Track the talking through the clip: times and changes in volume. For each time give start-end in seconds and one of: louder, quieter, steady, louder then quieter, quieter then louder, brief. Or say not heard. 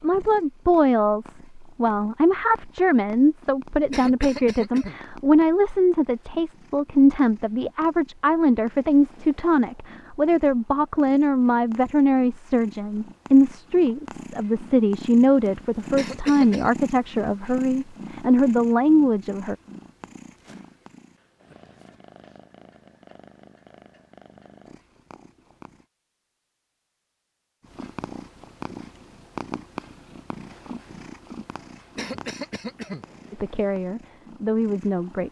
0.0-19.6 steady
33.3-35.2 brief.